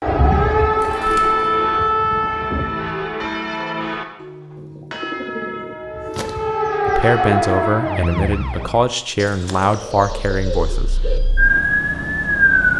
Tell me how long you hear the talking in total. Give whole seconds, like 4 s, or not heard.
4 s.